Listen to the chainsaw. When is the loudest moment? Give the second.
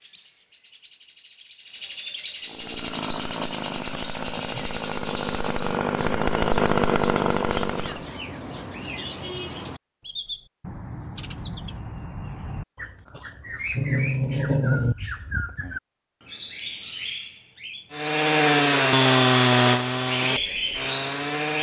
19 s.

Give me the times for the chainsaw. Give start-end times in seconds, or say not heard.
2.5-8.1, 17.9-21.5.